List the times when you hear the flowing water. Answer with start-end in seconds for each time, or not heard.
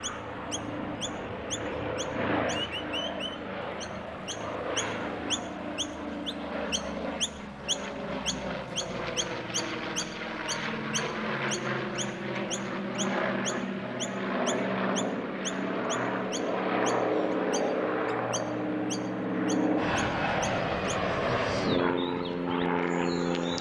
not heard.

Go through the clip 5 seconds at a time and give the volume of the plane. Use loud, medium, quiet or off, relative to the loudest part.
medium, medium, loud, loud, loud.